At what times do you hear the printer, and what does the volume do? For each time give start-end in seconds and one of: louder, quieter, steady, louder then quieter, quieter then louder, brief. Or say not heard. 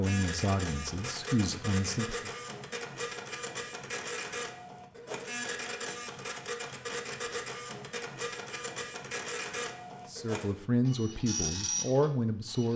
0.0-12.7 steady.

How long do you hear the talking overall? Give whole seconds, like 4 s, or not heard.
5 s.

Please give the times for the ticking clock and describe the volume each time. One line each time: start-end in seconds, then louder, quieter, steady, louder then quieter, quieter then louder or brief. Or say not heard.
not heard.